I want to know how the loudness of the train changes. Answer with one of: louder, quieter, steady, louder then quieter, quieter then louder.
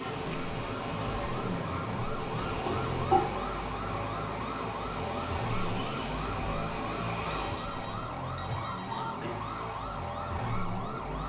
steady.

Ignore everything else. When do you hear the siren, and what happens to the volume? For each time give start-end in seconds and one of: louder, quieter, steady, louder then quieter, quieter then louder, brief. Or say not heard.
0.0-11.2 steady.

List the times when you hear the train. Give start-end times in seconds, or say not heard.
0.0-7.9.